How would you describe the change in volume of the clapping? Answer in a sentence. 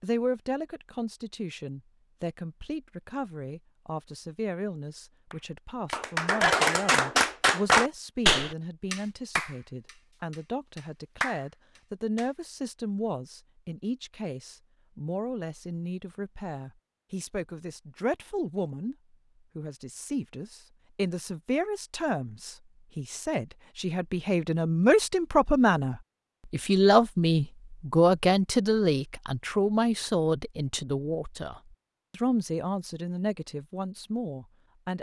The volume of the clapping goes down, then up.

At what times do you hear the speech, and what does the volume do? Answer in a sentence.
You can hear the speech from 0.0 to 18.9 s, at a steady volume; and from 19.6 to 34.9 s, getting louder then quieter.